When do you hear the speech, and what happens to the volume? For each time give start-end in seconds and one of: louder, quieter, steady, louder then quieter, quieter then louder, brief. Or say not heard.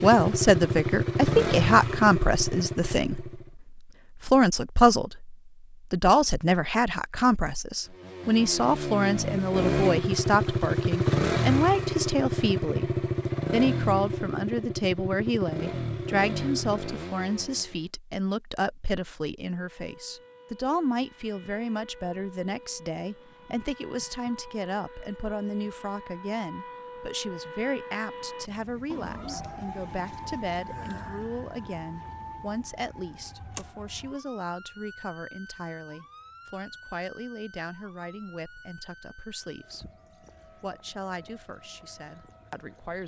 0.0-39.9 quieter
40.5-43.0 brief.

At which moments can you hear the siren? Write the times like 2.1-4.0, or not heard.
19.6-43.0.